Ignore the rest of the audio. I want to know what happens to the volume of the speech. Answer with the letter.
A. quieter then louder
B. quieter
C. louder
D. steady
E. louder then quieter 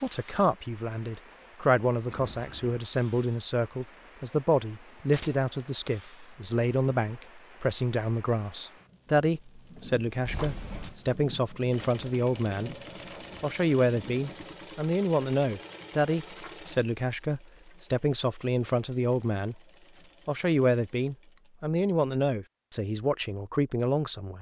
D.